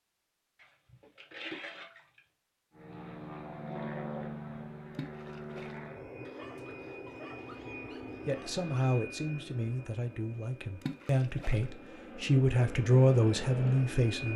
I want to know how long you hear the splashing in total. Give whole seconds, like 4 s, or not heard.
3 s.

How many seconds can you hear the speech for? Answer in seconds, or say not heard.
6 s.